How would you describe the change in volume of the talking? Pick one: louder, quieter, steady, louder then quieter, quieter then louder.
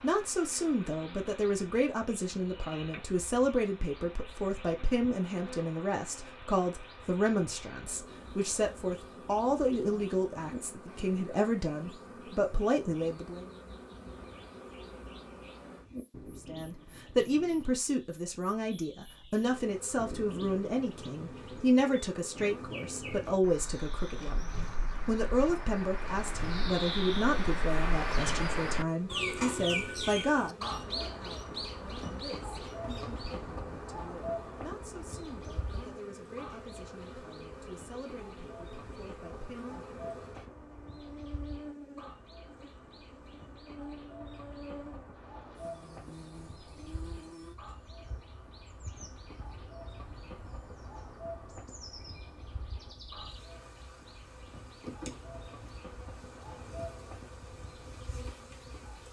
quieter.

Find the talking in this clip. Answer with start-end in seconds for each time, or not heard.
0.0-13.4, 16.4-39.8.